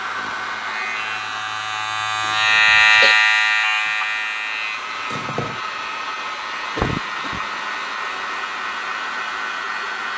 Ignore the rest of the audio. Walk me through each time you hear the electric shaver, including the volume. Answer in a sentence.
You can hear the electric shaver from 0.0 to 10.1 s, getting louder then quieter.